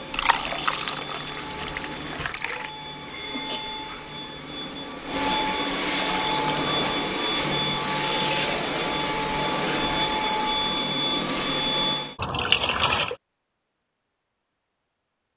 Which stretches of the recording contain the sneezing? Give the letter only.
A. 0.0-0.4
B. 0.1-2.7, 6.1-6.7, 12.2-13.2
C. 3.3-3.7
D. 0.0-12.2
C.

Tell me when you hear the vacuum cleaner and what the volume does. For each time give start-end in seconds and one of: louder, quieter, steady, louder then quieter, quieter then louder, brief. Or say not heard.
0.0-12.2 louder.